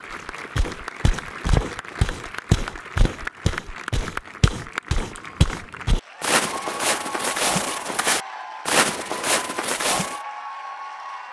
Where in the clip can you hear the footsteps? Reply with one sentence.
You can hear the footsteps from 0.6 to 10.2 s.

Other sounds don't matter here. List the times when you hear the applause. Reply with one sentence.
The applause can be heard from 0.0 to 11.2 s.